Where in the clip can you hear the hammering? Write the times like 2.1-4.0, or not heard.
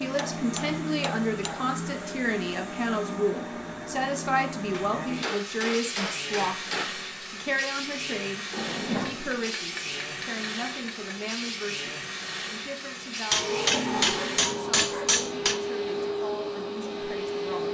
0.1-1.7, 4.7-6.9, 9.1-11.3, 13.3-15.6.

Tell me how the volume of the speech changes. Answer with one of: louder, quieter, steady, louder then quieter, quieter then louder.
quieter.